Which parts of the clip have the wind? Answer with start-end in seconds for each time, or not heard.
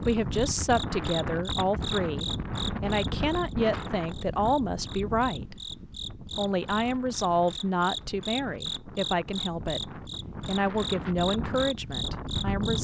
0.0-12.7.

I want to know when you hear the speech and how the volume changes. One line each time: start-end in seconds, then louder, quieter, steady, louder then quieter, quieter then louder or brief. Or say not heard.
0.0-12.7 steady.